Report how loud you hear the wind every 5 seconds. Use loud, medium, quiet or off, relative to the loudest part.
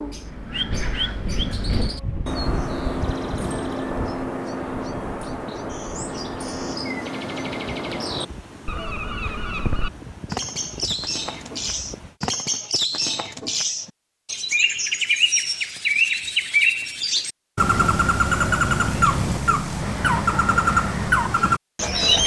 loud, medium, medium, off, off.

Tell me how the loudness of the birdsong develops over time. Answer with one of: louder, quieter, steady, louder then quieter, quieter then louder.
louder.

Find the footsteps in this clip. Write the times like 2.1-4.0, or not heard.
not heard.